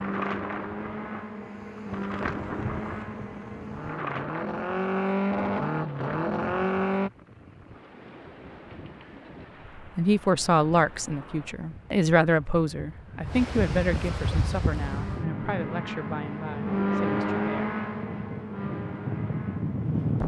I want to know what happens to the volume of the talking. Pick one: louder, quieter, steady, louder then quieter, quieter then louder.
quieter.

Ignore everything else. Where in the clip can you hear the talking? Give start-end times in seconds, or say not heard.
9.8-17.8.